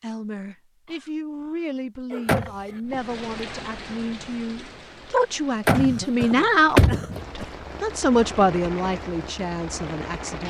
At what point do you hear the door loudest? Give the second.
7 s.